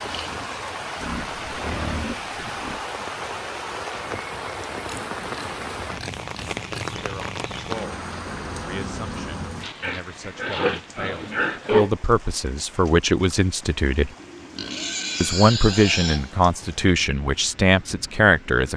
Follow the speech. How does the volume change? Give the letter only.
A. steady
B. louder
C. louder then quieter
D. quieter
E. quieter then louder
B.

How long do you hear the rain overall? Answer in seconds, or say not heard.
19 s.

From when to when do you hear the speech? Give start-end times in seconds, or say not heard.
7.0-14.1, 15.2-18.7.